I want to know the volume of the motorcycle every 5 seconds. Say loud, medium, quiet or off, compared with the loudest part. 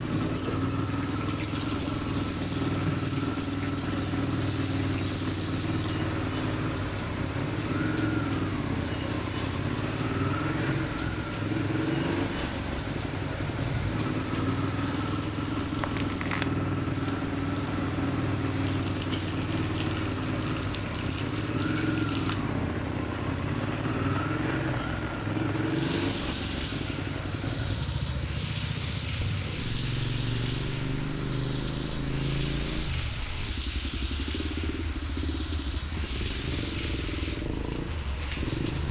loud, loud, loud, loud, loud, loud, loud, medium.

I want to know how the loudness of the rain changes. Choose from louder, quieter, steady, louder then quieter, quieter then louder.
steady.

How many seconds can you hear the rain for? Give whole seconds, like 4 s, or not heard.
39 s.